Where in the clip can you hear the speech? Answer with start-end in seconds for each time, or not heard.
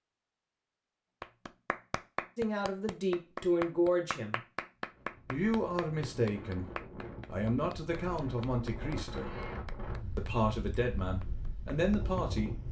2.4-4.4, 5.2-9.3, 10.2-12.6.